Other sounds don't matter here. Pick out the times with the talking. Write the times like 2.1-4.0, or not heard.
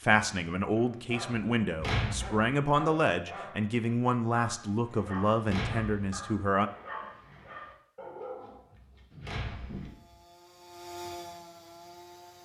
0.0-6.7.